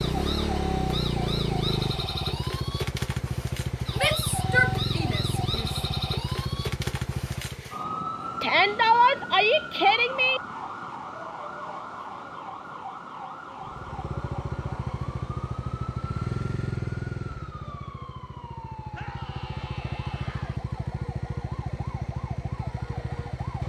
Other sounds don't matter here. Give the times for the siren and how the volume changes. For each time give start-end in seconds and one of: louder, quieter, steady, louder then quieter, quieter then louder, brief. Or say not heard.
0.0-23.6 quieter.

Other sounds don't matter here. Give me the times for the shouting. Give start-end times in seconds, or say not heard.
4.0-5.8, 8.4-10.4, 18.9-20.6.